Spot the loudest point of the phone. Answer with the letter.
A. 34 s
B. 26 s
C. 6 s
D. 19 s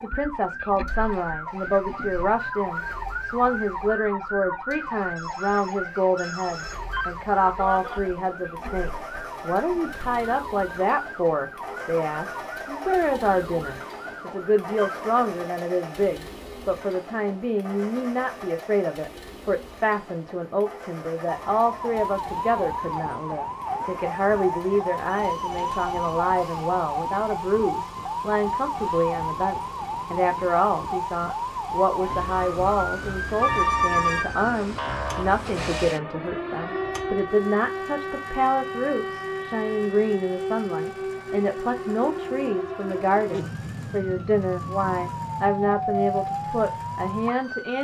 A.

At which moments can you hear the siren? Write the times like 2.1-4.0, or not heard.
0.0-15.0, 21.2-47.8.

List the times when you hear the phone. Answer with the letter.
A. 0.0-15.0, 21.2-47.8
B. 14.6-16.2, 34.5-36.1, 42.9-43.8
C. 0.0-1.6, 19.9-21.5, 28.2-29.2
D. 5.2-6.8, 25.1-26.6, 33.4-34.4
D.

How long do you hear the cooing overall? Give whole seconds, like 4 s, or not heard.
not heard.